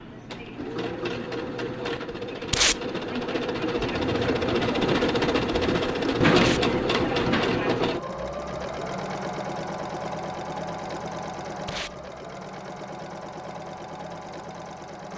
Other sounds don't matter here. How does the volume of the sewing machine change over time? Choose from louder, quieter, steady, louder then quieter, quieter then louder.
louder then quieter.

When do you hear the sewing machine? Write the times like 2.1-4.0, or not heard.
0.0-15.1.